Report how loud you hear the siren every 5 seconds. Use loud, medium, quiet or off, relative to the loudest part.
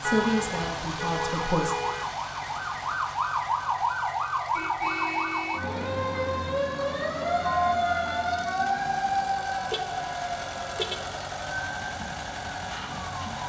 loud, loud, medium.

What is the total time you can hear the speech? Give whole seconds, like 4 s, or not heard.
2 s.